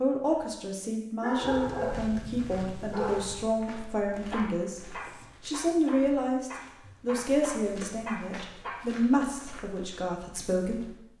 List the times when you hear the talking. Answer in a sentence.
You can hear the talking from 0.0 to 11.1 s.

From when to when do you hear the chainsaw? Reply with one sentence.
You can't hear the chainsaw here.